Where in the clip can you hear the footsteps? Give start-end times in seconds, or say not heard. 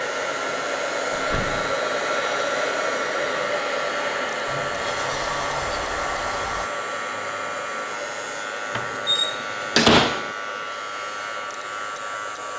not heard.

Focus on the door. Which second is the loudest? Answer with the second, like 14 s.
10 s.